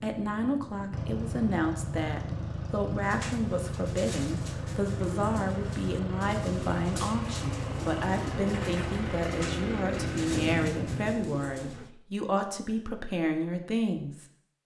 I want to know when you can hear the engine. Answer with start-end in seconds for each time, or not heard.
0.0-11.2.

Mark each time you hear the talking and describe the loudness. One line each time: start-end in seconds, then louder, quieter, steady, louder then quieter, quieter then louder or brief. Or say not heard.
0.0-14.2 steady.